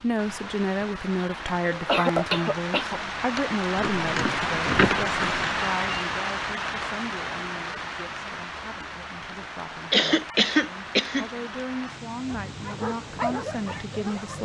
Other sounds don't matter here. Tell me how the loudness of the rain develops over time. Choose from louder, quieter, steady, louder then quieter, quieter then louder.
louder then quieter.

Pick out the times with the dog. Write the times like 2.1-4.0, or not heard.
12.2-14.3.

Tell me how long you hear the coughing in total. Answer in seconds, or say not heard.
3 s.